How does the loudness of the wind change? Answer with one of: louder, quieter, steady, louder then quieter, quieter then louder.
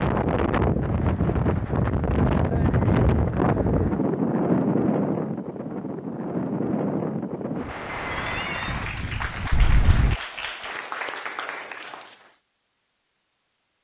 quieter.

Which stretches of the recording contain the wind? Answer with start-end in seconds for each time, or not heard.
0.0-10.2.